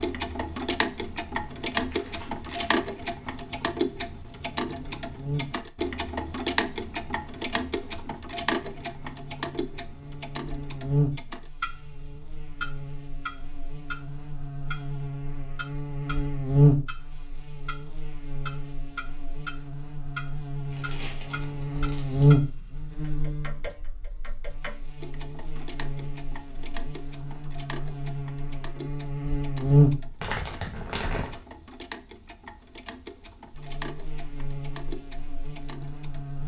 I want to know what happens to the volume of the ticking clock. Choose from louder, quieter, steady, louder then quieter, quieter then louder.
quieter.